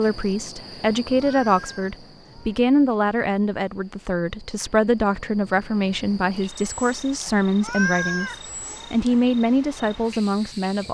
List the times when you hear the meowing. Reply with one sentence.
The meowing can be heard from 1.1 to 2.6 s and from 7.6 to 8.9 s.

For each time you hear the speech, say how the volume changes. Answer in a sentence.
The speech can be heard from 0.0 to 10.8 s, at a steady volume.